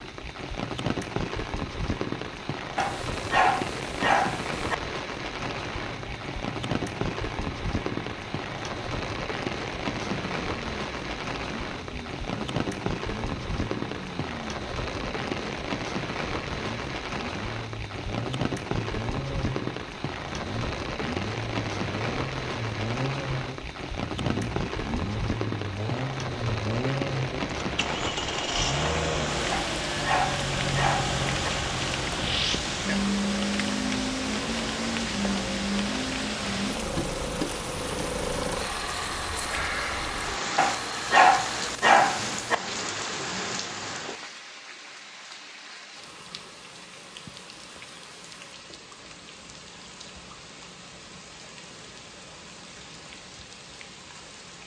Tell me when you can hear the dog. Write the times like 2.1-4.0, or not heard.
2.8-4.8, 29.5-31.5, 40.5-42.5.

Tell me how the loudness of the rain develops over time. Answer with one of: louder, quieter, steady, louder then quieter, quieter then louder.
quieter.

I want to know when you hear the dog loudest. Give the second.
41 s.